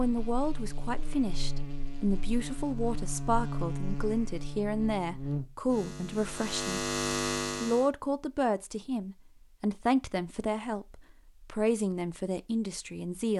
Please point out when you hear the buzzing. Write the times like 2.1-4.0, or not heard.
0.0-7.9.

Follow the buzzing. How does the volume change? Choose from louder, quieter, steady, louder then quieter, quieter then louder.
louder.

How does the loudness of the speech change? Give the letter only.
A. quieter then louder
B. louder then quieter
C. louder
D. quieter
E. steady
E.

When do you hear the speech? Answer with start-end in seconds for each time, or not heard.
0.0-6.8, 7.6-13.3.